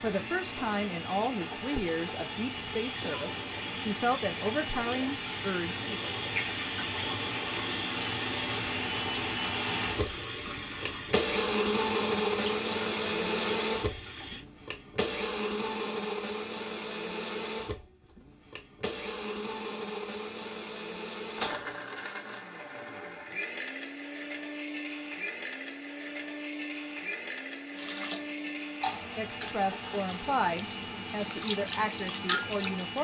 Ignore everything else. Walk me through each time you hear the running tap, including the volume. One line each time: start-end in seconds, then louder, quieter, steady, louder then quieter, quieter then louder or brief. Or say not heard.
0.0-14.4 louder then quieter
27.7-32.9 quieter then louder.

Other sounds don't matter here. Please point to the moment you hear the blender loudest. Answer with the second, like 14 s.
12 s.